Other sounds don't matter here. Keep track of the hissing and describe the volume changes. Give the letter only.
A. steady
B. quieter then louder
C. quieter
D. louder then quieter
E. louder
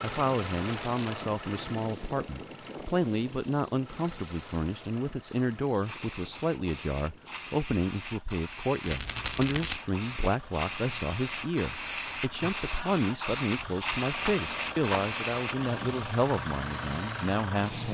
E.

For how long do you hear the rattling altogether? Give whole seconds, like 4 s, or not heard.
3 s.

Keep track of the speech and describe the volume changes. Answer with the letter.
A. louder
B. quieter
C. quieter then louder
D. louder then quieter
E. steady
E.